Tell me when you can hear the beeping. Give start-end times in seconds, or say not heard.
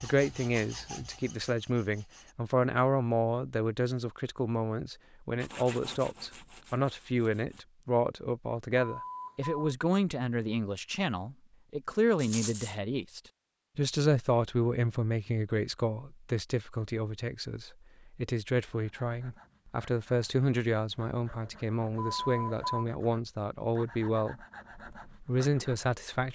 8.8-9.7, 21.9-22.9.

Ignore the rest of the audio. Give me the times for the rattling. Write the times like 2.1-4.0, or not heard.
12.2-12.8.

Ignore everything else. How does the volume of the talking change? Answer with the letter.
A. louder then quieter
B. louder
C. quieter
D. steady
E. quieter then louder
D.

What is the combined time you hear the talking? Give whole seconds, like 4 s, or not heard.
26 s.